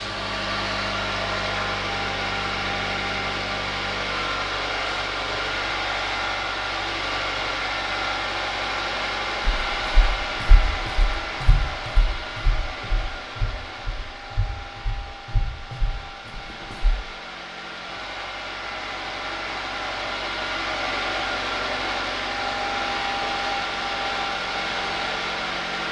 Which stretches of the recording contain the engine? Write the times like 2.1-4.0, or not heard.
0.0-25.8.